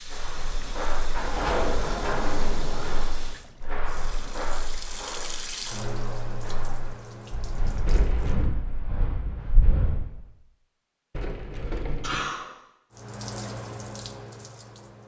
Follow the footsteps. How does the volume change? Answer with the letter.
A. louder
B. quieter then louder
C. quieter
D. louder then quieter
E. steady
B.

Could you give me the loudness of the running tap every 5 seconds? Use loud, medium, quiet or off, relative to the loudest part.
medium, loud, loud.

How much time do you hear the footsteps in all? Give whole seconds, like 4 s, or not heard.
10 s.